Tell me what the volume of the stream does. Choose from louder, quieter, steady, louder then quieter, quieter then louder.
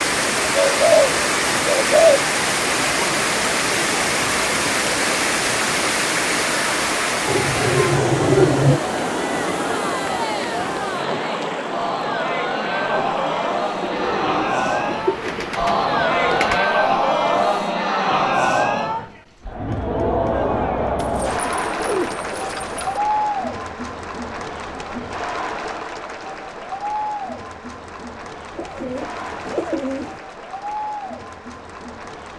quieter.